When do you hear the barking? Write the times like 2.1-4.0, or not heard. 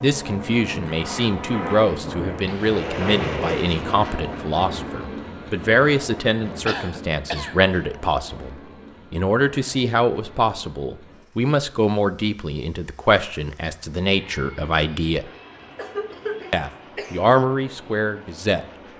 not heard.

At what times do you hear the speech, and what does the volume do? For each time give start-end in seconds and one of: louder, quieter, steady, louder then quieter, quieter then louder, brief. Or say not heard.
0.0-15.3 steady
16.5-18.9 brief.